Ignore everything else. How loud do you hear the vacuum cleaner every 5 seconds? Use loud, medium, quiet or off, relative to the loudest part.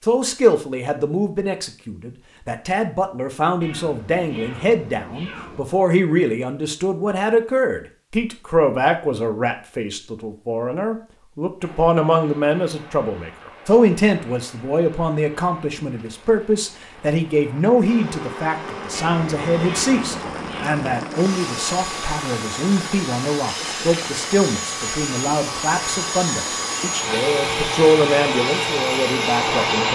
off, off, off, medium, medium, loud.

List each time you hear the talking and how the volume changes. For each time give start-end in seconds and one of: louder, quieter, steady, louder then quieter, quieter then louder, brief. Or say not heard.
0.0-29.8 steady.